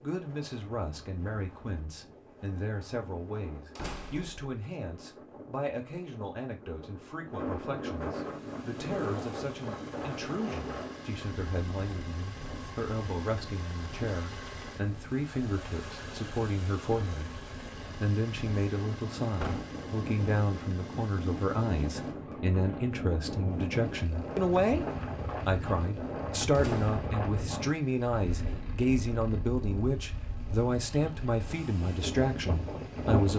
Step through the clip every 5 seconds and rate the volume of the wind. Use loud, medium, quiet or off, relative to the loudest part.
quiet, loud, medium, medium, loud, loud, loud.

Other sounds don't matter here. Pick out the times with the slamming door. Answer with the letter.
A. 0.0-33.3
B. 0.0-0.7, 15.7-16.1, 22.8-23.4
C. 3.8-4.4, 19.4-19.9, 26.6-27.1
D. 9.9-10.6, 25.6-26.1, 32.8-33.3
C.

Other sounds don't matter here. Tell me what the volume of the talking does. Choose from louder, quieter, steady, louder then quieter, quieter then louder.
louder.